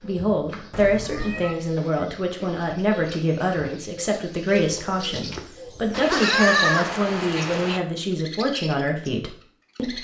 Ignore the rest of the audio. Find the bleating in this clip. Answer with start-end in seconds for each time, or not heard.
5.9-7.8.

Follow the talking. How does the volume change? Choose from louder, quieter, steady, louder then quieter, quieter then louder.
steady.